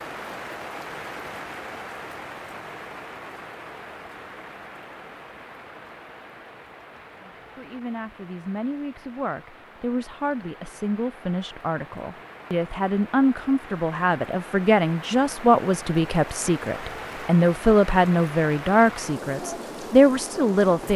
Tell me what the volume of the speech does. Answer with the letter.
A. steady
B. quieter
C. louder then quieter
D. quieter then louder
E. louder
E.